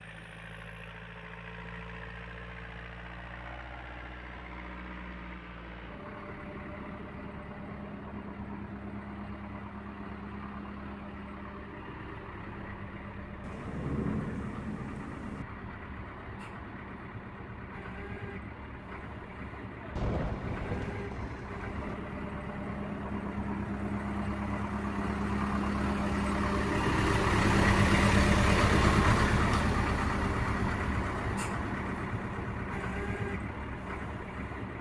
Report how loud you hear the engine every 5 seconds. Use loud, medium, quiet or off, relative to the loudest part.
quiet, quiet, quiet, quiet, medium, loud, medium.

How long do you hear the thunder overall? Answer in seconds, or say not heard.
4 s.